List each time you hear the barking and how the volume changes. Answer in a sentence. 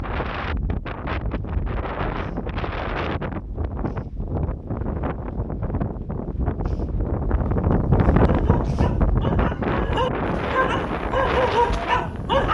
The barking can be heard from 8.2 to 12.4 s, getting louder.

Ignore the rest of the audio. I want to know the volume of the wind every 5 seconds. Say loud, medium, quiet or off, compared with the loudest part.
medium, loud, loud.